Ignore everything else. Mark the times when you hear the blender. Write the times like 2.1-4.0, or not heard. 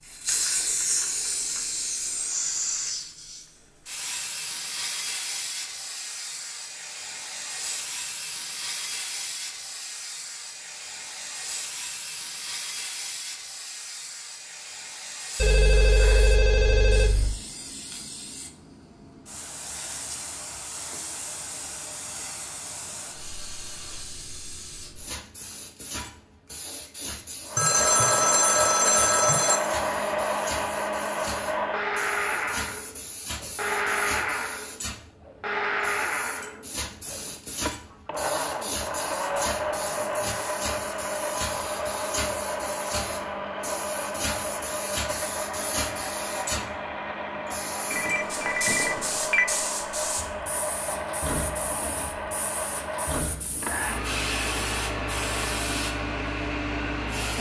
27.4-57.3.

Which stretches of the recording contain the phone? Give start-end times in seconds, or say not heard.
15.3-17.4, 27.6-29.6, 47.9-49.5.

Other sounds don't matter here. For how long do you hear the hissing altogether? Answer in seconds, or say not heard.
57 s.